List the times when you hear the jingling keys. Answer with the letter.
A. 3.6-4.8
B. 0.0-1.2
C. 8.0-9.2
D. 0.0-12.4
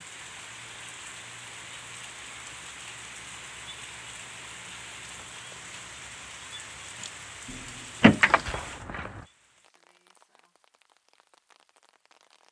C.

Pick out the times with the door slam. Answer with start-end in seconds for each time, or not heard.
not heard.